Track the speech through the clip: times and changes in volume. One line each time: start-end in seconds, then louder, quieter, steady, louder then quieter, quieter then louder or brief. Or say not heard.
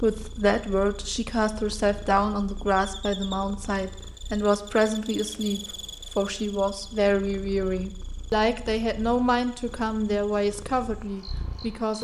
0.0-11.9 steady.